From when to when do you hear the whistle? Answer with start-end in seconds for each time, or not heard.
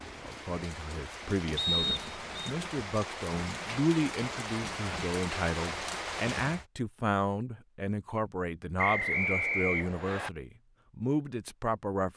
1.6-2.5, 8.8-10.3.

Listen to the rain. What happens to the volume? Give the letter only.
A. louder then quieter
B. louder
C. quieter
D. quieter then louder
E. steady
B.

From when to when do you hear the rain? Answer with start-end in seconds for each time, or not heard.
0.0-6.7.